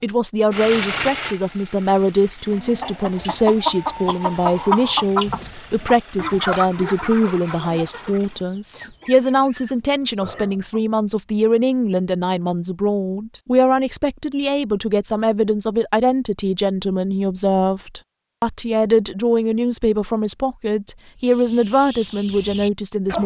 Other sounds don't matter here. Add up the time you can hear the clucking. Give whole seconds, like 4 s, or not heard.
10 s.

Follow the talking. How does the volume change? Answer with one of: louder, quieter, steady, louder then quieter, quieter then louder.
steady.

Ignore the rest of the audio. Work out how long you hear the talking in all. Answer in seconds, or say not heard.
23 s.